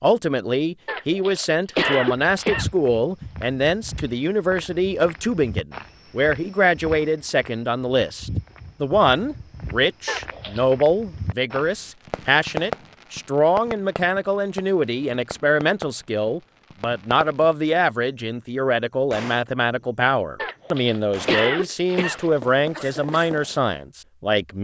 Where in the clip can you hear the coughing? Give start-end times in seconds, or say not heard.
0.8-2.6, 10.1-10.7, 20.4-22.3.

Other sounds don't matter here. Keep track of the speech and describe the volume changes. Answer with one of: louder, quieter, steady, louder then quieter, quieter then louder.
steady.